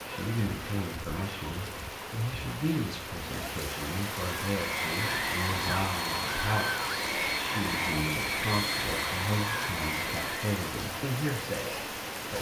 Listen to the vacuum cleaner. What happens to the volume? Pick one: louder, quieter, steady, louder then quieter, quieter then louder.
steady.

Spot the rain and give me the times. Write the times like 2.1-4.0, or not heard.
0.0-12.3.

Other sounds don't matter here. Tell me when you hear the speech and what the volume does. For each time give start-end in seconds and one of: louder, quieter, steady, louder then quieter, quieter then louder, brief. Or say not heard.
0.1-12.3 steady.